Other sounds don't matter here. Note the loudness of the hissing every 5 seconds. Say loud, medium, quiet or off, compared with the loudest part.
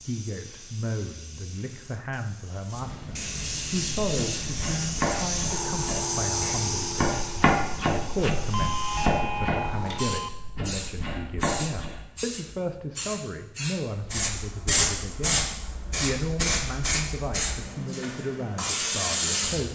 medium, loud, loud, loud.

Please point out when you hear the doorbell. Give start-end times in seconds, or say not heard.
8.5-10.3.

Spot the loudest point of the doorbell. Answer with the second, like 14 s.
9 s.